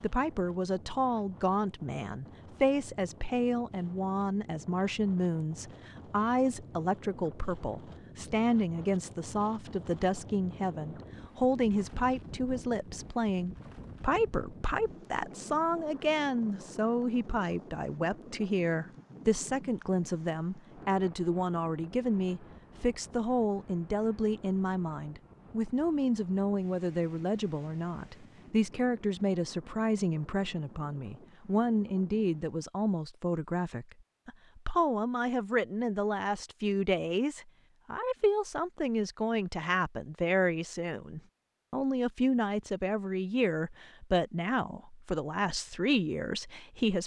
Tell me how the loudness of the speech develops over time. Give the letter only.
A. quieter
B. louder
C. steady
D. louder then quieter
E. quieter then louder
C.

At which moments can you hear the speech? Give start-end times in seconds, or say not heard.
0.0-47.0.